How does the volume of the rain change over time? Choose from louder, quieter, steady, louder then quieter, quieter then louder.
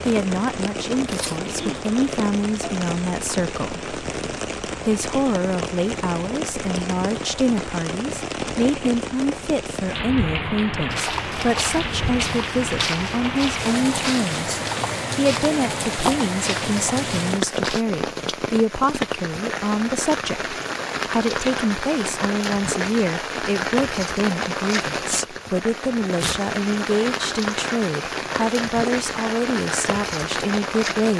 steady.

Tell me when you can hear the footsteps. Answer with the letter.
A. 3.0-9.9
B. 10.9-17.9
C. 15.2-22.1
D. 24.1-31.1
B.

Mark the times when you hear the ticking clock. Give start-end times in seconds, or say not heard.
not heard.